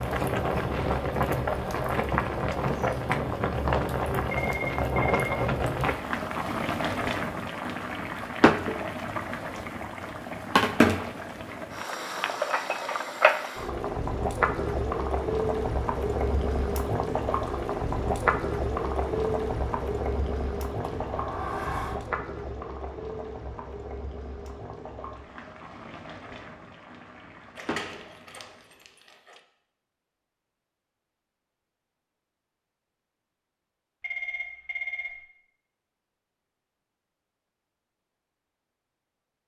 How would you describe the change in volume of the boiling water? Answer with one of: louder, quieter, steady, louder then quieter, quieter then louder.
quieter.